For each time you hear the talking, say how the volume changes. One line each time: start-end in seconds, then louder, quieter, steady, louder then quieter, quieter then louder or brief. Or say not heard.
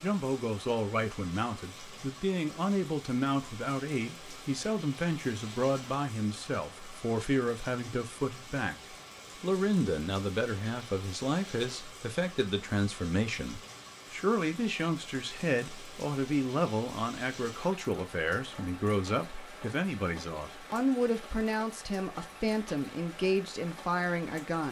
0.0-24.6 steady.